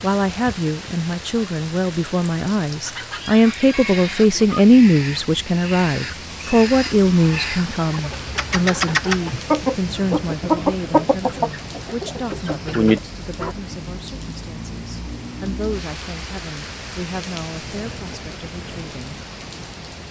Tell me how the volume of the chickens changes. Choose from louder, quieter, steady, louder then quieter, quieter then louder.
louder.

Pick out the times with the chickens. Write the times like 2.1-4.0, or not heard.
2.9-13.6.